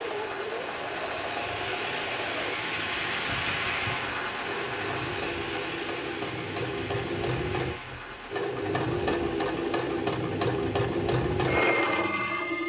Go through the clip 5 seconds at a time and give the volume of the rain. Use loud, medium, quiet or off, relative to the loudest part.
loud, medium, quiet.